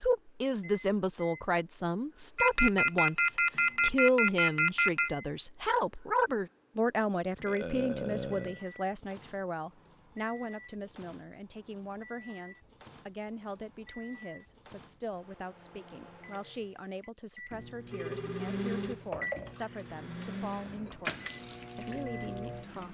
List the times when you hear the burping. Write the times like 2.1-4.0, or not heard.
7.5-8.7.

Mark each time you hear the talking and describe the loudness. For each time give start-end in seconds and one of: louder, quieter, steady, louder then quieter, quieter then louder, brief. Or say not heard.
0.0-22.8 quieter.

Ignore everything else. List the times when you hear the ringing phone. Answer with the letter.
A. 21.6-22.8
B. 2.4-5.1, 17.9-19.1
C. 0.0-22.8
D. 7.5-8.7
B.